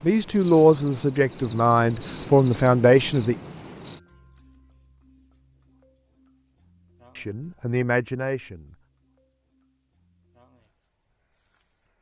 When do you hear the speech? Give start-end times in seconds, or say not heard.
0.0-3.4, 7.2-8.8.